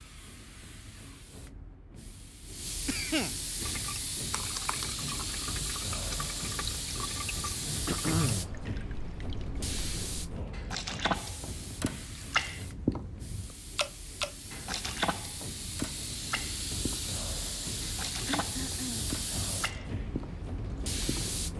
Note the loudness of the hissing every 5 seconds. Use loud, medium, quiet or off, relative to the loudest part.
loud, loud, medium, loud, loud.